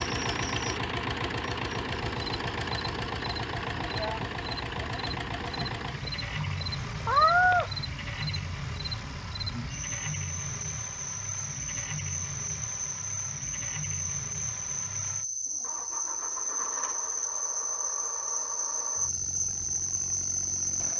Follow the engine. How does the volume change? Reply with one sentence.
The volume of the engine goes down.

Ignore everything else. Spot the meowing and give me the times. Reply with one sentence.
The meowing can be heard from 6.0 to 7.7 s.